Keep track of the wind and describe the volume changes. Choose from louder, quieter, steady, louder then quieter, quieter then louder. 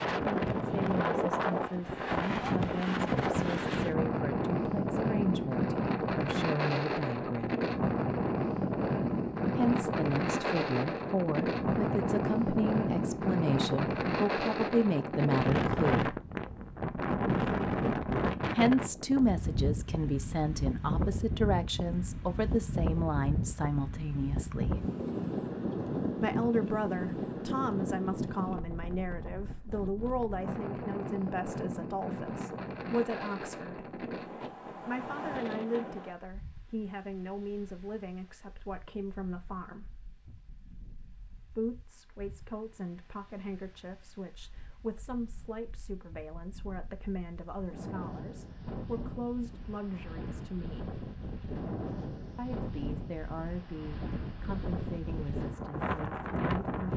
quieter then louder.